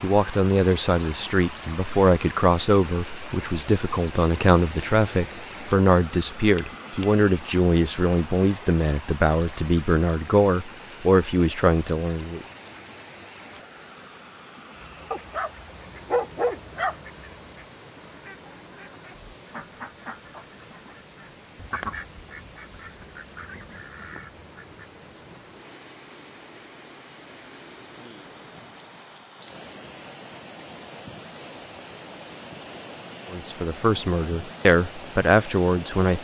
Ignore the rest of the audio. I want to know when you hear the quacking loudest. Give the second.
22 s.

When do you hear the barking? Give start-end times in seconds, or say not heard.
15.1-16.9.